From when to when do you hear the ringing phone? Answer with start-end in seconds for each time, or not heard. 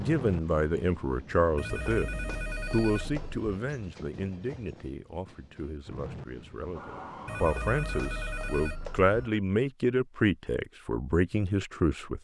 1.6-3.5, 7.2-9.3.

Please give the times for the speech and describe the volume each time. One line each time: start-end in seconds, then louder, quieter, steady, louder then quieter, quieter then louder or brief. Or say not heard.
0.0-2.1 brief
2.7-12.1 quieter then louder.